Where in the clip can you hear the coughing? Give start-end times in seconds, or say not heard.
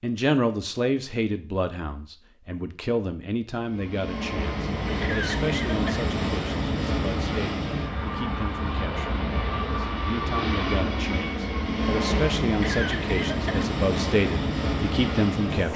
5.0-6.1, 12.6-13.7.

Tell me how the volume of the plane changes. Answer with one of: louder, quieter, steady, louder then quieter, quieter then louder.
steady.